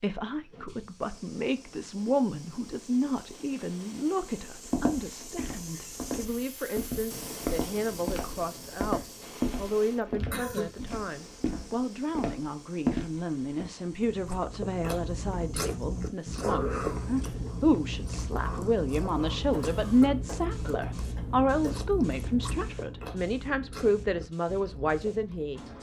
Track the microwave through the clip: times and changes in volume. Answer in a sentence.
You can't hear the microwave here.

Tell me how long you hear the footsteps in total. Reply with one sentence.
The footsteps can be heard for 9 seconds in total.